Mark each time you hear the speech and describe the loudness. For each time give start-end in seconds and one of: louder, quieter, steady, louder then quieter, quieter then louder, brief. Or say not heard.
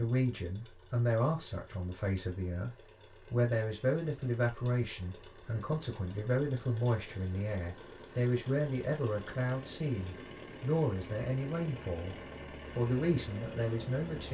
0.0-12.2 steady
12.8-14.2 brief.